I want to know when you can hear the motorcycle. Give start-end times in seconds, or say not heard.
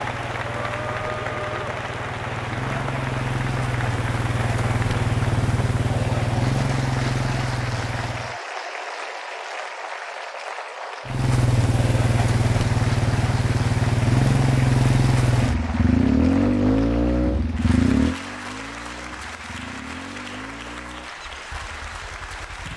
0.0-8.4, 11.1-22.7.